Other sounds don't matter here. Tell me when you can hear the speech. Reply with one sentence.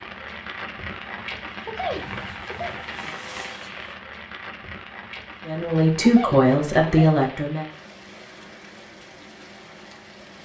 The speech can be heard from 5.5 to 7.7 s.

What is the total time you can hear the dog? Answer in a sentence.
The dog can't be heard in this clip.